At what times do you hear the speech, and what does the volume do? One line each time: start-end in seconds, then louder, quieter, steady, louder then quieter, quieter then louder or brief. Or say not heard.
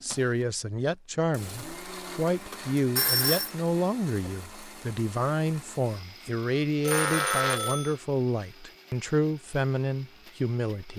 0.0-10.9 steady.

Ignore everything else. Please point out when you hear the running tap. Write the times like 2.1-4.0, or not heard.
not heard.